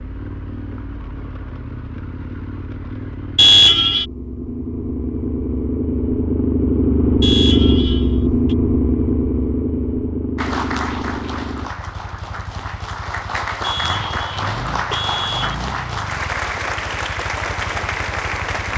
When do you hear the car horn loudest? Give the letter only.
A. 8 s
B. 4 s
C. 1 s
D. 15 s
B.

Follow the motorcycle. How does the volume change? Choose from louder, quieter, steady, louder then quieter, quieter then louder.
louder then quieter.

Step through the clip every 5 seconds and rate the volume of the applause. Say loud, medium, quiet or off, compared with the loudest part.
off, off, loud, loud.